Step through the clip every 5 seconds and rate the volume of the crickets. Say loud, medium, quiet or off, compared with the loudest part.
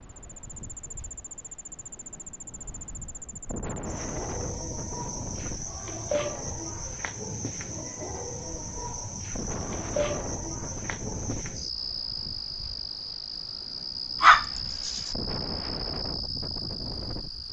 medium, loud, loud, loud.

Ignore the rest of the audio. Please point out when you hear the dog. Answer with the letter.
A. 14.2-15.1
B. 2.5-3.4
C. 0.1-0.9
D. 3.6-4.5
A.